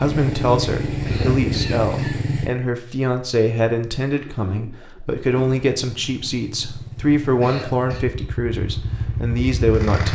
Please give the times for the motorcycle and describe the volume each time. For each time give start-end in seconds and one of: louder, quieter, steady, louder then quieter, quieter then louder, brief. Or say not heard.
0.0-2.5 brief
5.7-10.1 louder.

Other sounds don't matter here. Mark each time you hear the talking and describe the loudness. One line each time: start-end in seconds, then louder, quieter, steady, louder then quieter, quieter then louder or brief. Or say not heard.
0.0-10.1 steady.